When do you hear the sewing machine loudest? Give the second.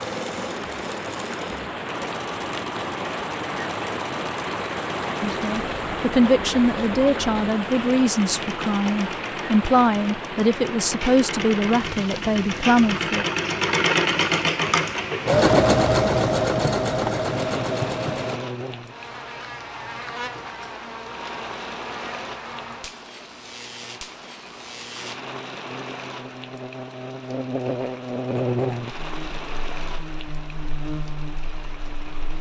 16 s.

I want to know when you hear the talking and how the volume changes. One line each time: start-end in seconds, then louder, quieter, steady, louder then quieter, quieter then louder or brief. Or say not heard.
5.2-13.2 steady.